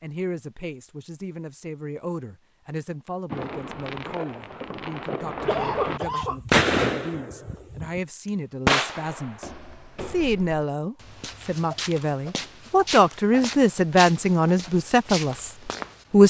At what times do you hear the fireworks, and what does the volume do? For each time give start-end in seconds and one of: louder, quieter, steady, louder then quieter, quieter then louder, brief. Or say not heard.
3.3-8.0 louder then quieter
8.7-9.3 brief.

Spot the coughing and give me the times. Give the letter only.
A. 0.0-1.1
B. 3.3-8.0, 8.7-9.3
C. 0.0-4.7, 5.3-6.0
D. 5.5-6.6
D.